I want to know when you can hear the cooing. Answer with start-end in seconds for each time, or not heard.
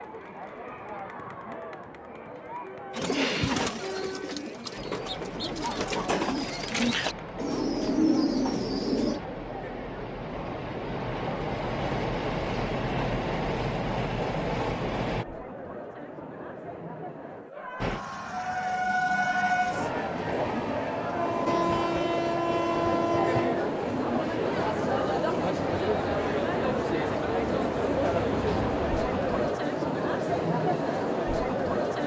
3.0-9.2.